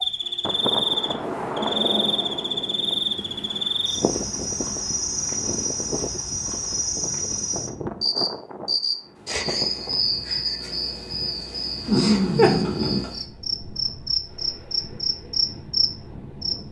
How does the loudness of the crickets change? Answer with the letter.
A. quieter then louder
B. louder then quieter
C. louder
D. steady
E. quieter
D.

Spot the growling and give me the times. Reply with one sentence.
You can hear the growling from 11.8 to 13.1 s.